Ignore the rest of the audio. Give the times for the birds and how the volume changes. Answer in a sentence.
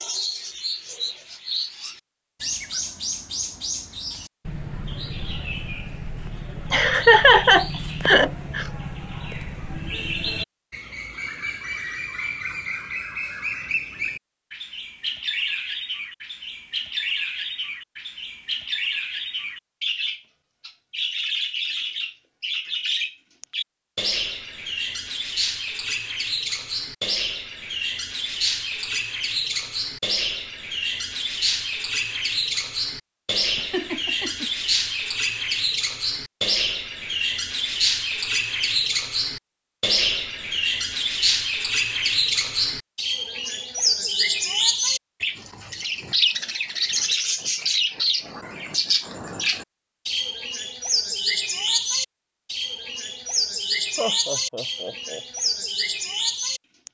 The birds can be heard from 0.0 to 56.8 s, getting louder.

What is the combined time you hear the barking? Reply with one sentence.
The barking can't be heard in this clip.